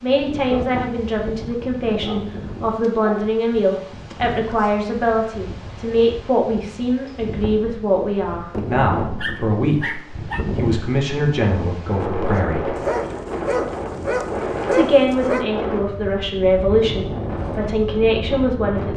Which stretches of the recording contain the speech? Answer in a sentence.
The speech can be heard from 0.0 to 12.8 s and from 14.7 to 18.9 s.